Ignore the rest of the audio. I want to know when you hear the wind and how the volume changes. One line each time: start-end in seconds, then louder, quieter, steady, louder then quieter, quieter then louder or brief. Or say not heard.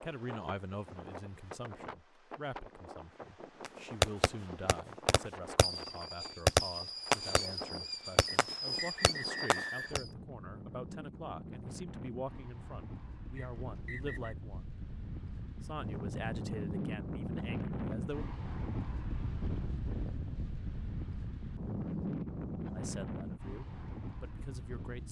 0.0-25.0 louder.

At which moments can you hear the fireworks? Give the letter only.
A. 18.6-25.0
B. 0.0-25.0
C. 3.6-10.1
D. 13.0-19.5
C.